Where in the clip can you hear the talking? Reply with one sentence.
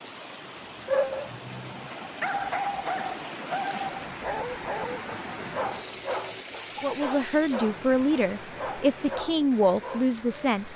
The talking can be heard from 6.8 to 10.7 s.